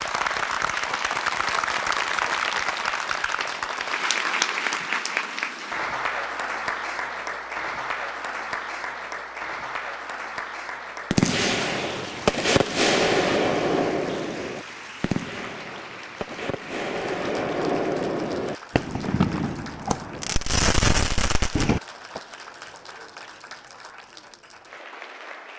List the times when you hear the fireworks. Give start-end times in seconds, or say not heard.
11.1-22.2.